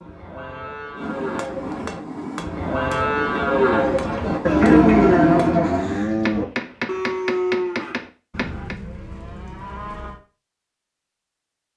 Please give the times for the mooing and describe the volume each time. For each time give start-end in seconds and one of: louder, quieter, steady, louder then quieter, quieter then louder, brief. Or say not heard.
0.0-10.2 louder then quieter.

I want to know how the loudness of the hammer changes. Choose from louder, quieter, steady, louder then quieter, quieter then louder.
steady.